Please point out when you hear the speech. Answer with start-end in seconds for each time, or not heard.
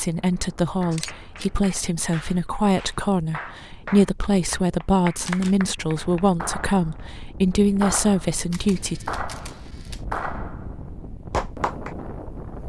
0.0-9.0.